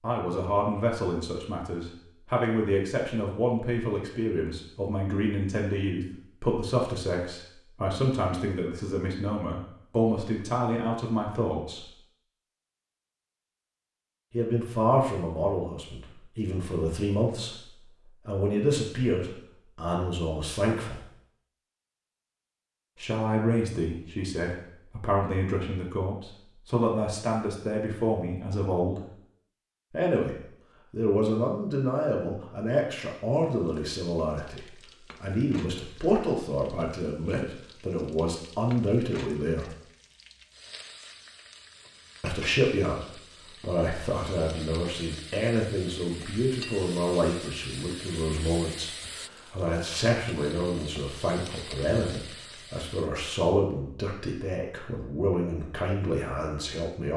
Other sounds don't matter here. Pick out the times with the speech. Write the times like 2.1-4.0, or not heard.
0.0-11.9, 14.3-21.1, 22.9-29.1, 29.9-39.8, 42.2-57.1.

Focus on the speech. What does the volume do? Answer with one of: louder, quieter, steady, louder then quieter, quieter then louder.
steady.